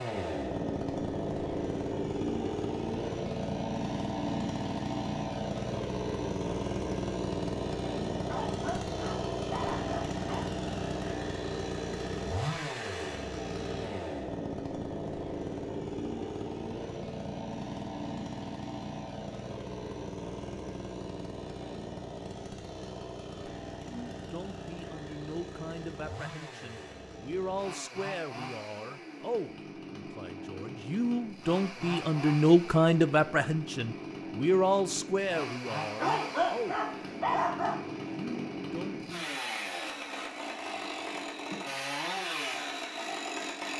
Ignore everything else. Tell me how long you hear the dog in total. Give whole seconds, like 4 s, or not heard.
4 s.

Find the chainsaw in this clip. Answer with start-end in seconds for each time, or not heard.
0.0-43.7.